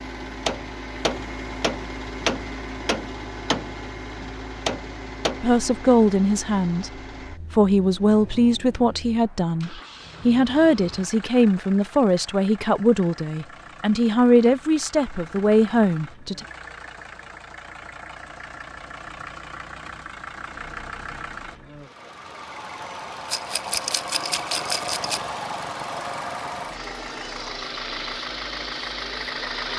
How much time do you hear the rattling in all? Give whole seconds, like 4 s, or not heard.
2 s.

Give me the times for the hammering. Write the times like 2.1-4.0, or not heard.
0.5-5.5.